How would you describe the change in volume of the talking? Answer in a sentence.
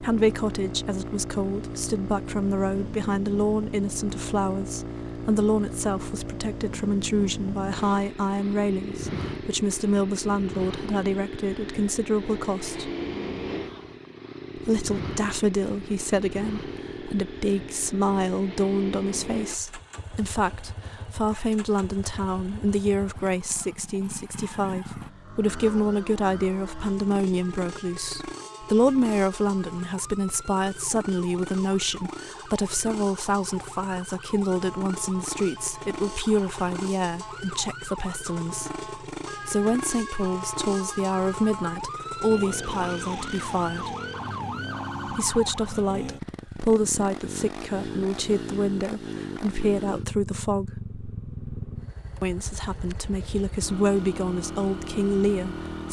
The loudness of the talking stays about the same.